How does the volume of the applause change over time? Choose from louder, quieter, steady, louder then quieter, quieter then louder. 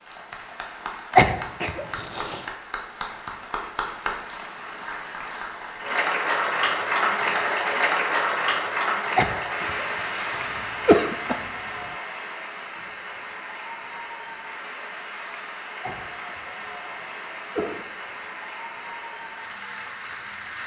louder then quieter.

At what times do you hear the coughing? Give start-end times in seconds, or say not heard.
1.1-2.5, 9.2-11.3, 15.8-17.8.